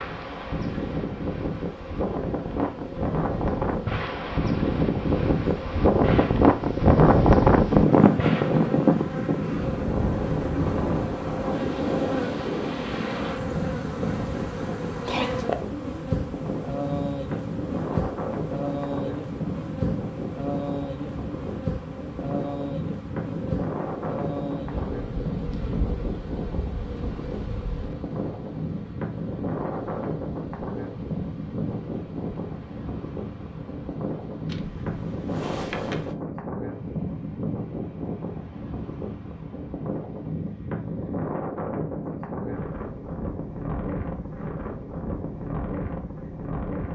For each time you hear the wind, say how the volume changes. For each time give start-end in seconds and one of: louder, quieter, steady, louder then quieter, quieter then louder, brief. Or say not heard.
0.0-46.9 quieter.